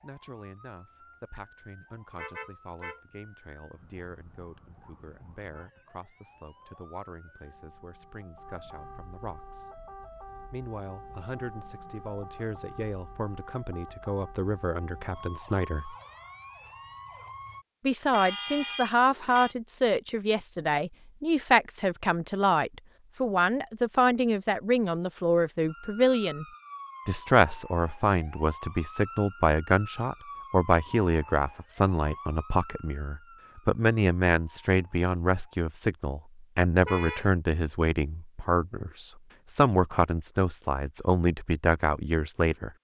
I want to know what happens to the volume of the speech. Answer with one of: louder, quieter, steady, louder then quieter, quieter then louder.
louder.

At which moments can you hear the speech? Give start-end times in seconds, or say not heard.
0.0-9.7, 10.5-15.9, 17.9-26.4, 27.1-42.7.